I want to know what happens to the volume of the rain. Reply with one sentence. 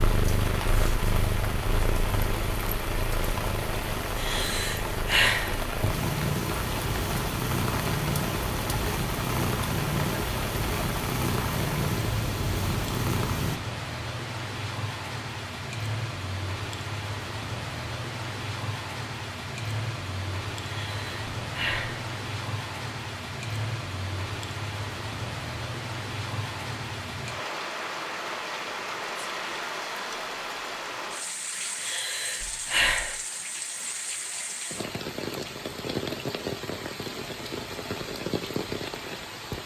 The volume of the rain stays about the same.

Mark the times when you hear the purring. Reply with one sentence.
The purring can be heard from 0.0 to 13.6 s.